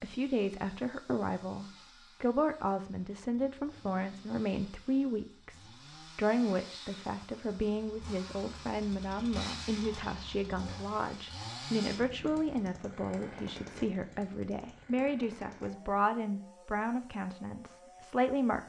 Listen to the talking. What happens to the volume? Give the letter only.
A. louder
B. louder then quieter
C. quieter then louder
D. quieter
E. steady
E.